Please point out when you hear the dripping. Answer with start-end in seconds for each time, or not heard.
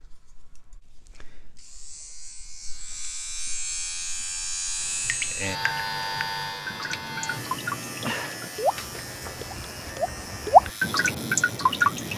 4.8-12.1.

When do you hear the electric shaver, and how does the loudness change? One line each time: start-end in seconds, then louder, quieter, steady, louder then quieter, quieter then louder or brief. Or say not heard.
0.0-12.1 louder then quieter.